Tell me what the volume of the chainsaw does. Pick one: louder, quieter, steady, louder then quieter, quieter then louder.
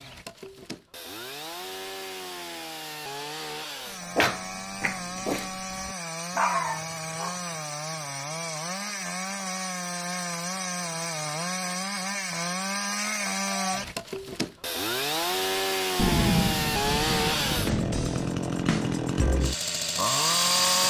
louder.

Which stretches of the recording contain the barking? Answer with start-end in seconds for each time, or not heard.
4.2-7.4.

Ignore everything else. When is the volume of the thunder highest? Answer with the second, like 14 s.
16 s.